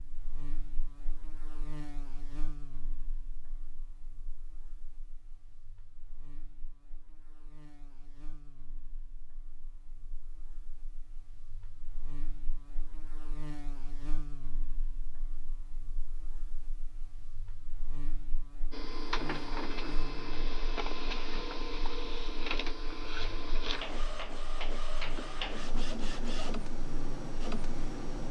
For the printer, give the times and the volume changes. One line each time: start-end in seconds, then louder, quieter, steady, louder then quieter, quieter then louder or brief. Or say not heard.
18.7-28.2 steady.